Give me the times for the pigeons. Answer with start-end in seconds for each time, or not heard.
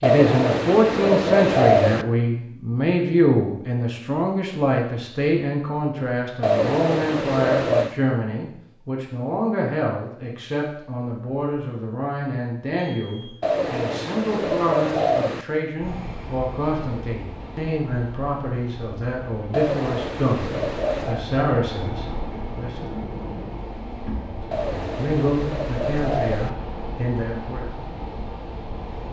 0.0-2.0, 6.4-8.0, 13.4-15.4, 19.5-21.2, 24.5-26.5.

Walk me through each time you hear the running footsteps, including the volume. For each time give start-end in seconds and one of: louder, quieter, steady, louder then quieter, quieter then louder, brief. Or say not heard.
not heard.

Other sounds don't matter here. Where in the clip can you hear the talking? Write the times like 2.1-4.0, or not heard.
0.0-22.9, 24.1-27.6.